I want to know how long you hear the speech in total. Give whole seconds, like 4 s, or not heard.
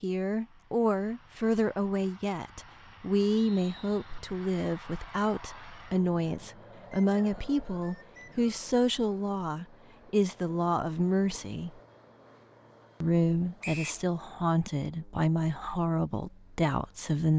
16 s.